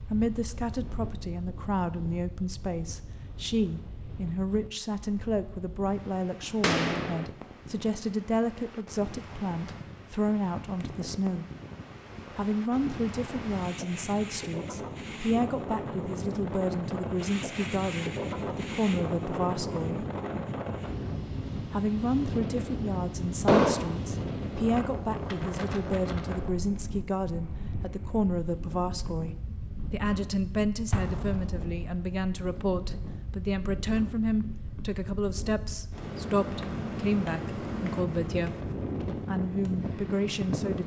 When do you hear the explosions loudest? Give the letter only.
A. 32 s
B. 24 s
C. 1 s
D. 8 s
B.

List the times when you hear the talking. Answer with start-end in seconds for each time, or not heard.
0.1-11.4, 12.3-20.1, 21.7-38.5, 39.2-40.8.